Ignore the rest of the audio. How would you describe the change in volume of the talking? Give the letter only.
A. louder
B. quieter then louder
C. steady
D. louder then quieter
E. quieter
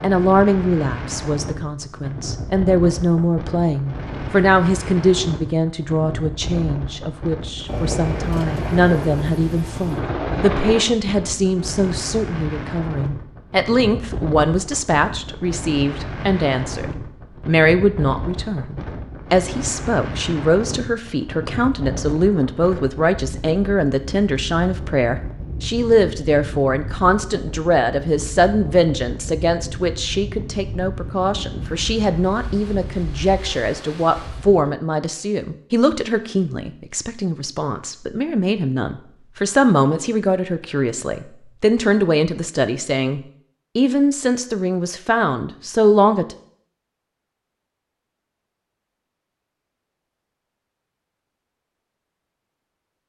C.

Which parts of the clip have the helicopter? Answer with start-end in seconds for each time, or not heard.
7.7-10.8.